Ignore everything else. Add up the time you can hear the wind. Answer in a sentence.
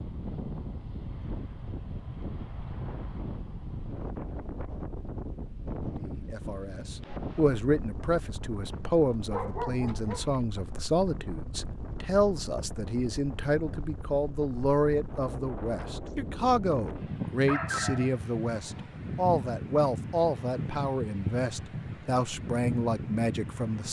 You can hear the wind for 24 seconds altogether.